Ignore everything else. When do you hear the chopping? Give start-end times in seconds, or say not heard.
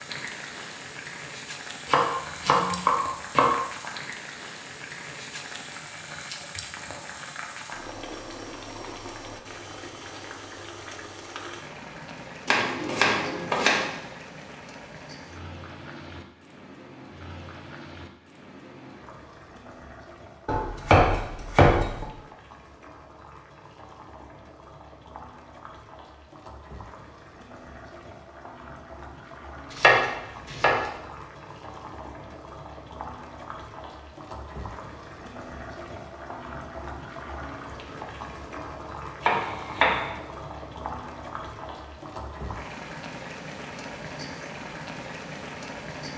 1.9-3.5, 12.4-13.8, 20.4-22.1, 29.7-30.8, 39.2-40.0.